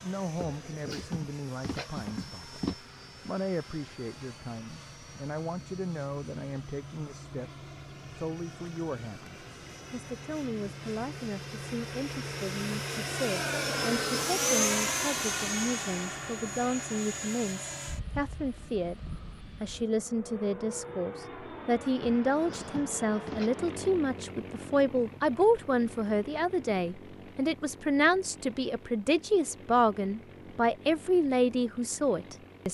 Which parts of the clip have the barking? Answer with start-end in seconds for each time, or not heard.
0.3-2.8, 22.0-23.6.